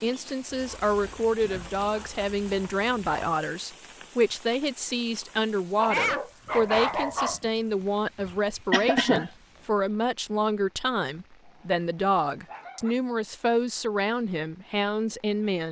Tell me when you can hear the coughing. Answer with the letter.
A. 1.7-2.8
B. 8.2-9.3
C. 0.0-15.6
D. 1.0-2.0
B.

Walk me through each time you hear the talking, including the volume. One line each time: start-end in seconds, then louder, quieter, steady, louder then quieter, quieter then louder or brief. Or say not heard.
0.0-15.6 steady.